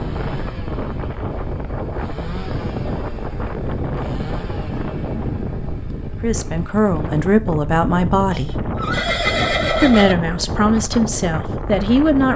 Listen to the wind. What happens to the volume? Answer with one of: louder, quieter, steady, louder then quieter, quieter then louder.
steady.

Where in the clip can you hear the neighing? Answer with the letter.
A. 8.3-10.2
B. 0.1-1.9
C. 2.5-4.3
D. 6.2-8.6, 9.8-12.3
A.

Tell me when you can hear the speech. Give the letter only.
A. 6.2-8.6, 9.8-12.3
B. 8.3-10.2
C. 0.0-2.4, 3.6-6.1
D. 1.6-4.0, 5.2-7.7
A.